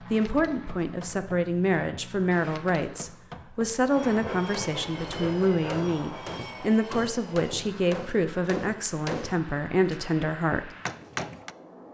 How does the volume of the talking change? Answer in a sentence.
The loudness of the talking stays about the same.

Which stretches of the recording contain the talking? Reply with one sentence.
You can hear the talking from 0.0 to 10.7 s.